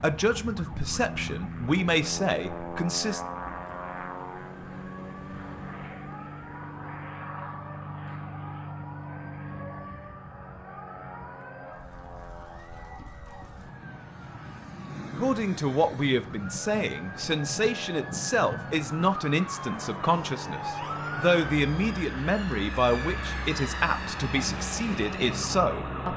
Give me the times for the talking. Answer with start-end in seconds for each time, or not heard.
0.0-3.2, 15.2-26.1.